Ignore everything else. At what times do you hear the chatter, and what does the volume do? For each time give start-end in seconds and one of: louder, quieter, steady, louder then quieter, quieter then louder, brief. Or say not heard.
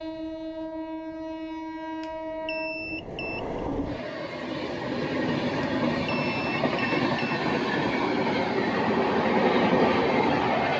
not heard.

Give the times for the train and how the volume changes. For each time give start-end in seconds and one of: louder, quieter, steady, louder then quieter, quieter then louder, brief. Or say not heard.
0.0-10.7 louder.